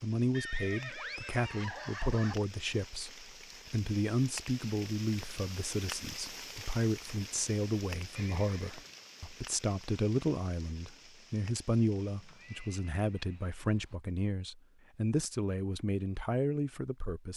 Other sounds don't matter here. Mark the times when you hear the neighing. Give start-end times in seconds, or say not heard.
0.3-2.4, 8.2-8.9, 12.0-13.9.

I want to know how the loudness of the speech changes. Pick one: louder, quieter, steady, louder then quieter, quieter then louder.
steady.